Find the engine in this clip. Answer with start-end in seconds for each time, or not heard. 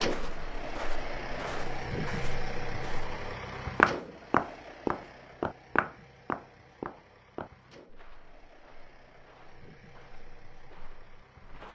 0.0-11.6.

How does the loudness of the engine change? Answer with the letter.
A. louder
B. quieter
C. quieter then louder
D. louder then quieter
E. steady
B.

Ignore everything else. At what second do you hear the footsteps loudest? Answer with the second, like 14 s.
4 s.